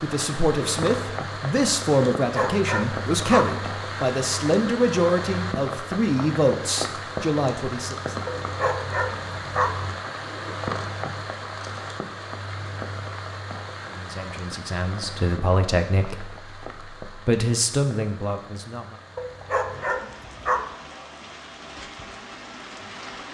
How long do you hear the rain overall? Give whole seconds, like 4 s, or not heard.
23 s.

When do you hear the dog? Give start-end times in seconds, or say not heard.
2.1-3.5, 8.2-9.8, 19.1-20.8.